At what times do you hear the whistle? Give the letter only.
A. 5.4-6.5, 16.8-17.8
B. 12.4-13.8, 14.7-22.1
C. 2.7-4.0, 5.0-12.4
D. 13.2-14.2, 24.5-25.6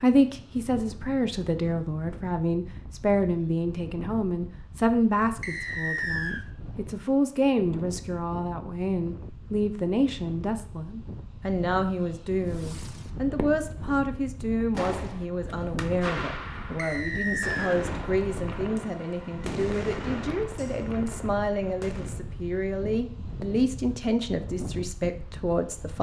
A.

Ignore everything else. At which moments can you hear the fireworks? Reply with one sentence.
The fireworks can be heard from 12.4 to 13.8 s and from 14.7 to 22.1 s.